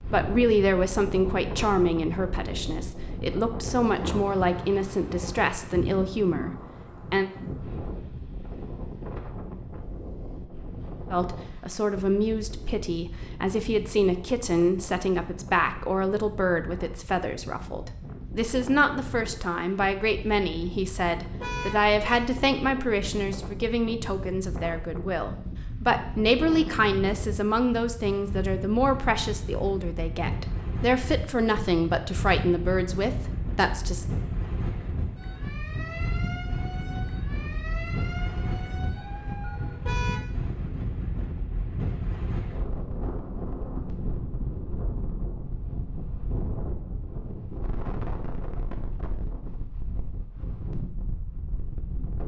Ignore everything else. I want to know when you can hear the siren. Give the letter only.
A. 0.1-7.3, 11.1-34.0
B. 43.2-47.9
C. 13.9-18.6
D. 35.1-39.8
D.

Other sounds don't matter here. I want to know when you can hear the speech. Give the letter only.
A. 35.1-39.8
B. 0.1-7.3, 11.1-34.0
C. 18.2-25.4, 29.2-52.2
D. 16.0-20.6
B.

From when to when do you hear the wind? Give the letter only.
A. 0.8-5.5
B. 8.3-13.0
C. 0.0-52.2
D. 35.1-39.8
C.